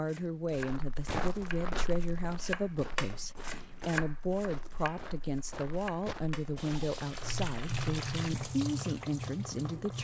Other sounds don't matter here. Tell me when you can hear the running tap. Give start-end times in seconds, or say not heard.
6.5-9.9.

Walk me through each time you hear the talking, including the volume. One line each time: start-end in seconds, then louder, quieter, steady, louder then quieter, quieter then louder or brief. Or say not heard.
0.0-9.9 steady.